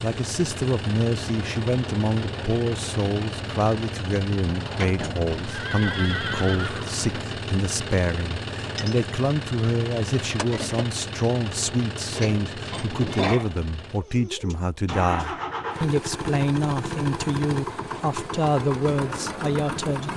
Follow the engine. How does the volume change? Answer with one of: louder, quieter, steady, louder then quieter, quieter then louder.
steady.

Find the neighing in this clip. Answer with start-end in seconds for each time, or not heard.
5.5-7.2.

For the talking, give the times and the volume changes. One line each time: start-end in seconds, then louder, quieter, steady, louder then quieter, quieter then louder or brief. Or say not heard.
0.0-20.1 steady.